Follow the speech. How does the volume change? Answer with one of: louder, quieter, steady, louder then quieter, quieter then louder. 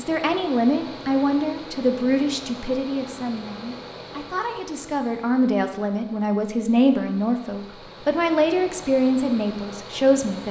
quieter then louder.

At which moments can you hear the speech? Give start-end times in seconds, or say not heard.
0.0-10.4.